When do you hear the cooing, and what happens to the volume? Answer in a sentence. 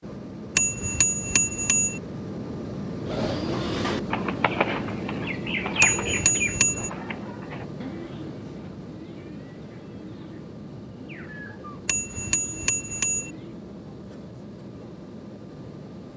The cooing can be heard from 3.0 to 13.6 s, getting quieter.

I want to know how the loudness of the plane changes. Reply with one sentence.
The volume of the plane goes down.